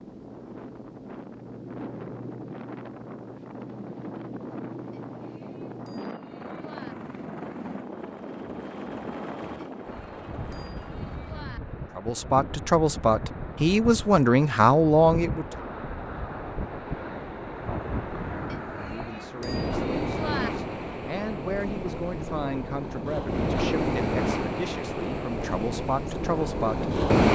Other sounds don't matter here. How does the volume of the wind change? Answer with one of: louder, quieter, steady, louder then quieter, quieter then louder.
louder.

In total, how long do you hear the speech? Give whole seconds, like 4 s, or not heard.
12 s.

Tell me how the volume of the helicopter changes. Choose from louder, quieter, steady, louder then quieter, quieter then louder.
steady.